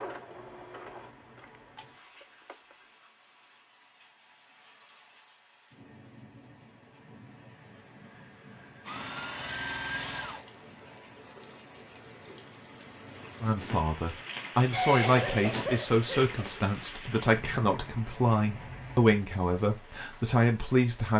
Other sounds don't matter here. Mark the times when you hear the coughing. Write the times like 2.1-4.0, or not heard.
14.7-16.7.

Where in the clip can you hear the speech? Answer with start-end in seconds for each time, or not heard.
13.4-21.1.